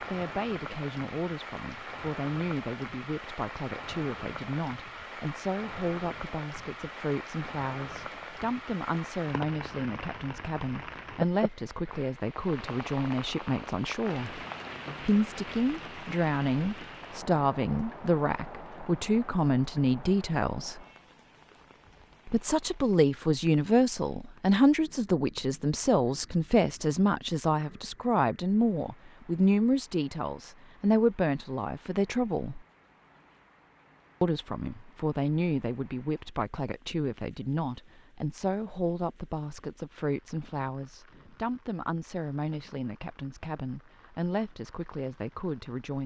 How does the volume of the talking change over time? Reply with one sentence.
The volume of the talking goes up, then down.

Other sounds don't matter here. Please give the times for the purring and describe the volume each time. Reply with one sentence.
The purring can't be heard in this clip.